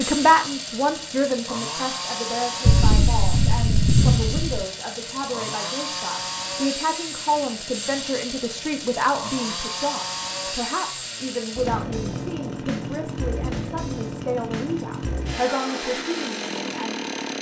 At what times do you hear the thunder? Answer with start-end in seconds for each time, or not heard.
2.6-4.7.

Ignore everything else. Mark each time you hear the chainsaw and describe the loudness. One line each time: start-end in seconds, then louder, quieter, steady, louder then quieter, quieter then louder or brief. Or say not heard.
0.0-17.3 steady.